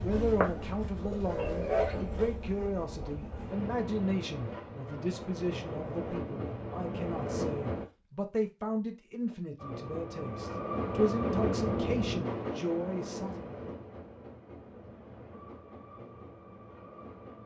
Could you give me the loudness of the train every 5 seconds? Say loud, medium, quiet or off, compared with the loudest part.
loud, loud, loud, quiet.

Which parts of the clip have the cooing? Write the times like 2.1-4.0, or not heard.
0.0-2.1.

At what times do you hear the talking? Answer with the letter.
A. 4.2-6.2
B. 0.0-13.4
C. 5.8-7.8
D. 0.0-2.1
B.